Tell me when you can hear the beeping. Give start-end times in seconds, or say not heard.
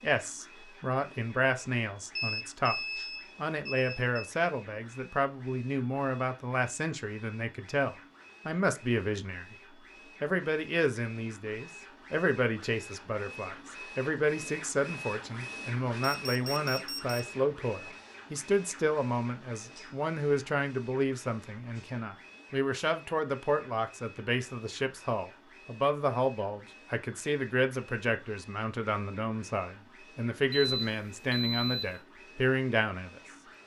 2.1-4.2, 16.0-17.2, 30.5-32.0.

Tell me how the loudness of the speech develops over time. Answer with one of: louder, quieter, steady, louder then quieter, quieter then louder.
steady.